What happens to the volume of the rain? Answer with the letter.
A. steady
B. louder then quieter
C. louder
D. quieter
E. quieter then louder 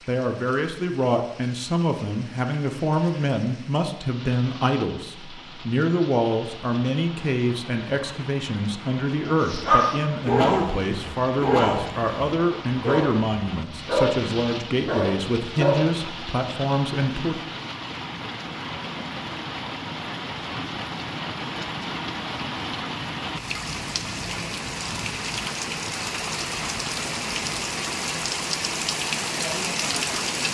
C.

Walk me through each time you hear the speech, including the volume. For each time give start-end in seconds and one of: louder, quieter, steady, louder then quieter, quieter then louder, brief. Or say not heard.
0.1-17.4 steady.